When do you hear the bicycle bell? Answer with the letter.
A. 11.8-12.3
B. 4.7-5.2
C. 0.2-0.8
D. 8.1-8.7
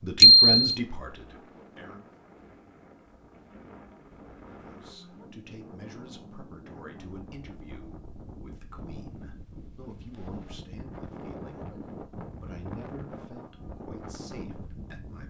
C.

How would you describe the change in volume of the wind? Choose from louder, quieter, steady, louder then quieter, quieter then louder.
louder.